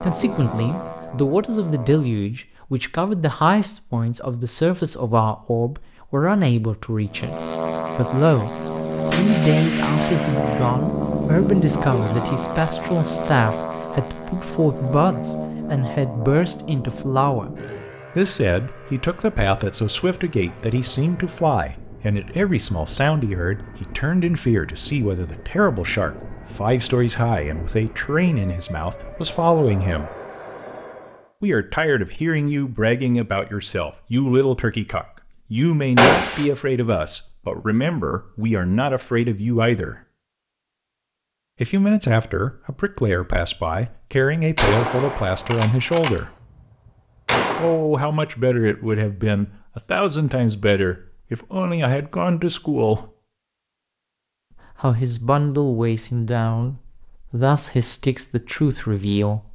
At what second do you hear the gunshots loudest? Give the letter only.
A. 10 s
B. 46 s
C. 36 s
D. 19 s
C.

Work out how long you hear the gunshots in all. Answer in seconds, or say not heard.
4 s.